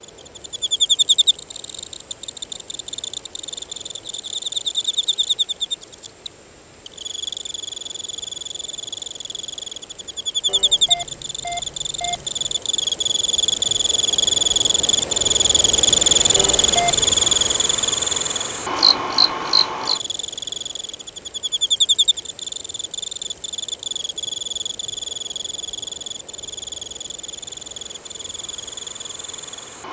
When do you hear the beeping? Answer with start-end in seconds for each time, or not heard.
10.4-12.6, 16.4-17.1.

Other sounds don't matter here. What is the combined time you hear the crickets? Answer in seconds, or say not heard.
30 s.